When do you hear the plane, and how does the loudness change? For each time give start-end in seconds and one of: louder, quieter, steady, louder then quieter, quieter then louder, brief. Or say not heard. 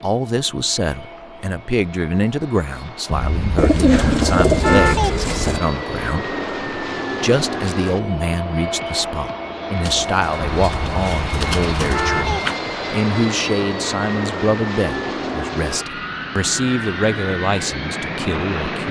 0.0-18.8 louder.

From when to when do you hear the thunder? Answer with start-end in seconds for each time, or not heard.
not heard.